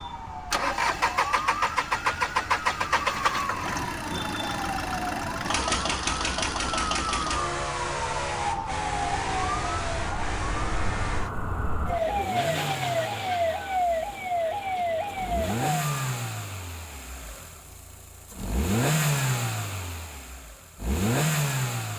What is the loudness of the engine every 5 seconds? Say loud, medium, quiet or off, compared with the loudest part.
loud, loud, medium, loud, loud.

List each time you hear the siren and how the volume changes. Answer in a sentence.
You can hear the siren from 0.0 to 16.0 s, getting louder.